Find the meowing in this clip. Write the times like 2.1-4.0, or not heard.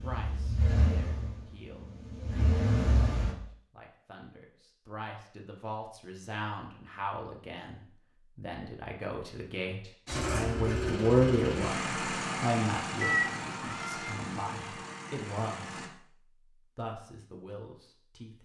13.0-14.2.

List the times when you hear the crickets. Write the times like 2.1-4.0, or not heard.
not heard.